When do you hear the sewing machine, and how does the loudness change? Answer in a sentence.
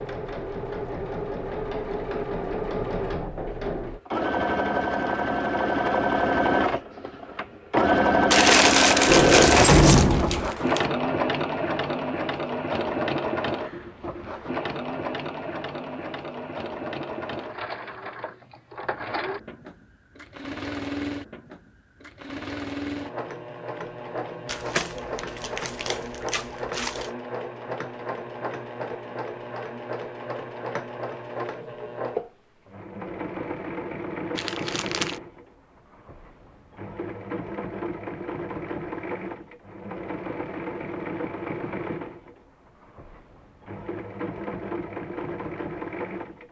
The sewing machine can be heard from 0.0 to 46.4 s, getting quieter.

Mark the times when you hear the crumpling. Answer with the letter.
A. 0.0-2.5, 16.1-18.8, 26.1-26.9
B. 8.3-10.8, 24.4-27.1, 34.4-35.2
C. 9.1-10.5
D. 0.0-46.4
B.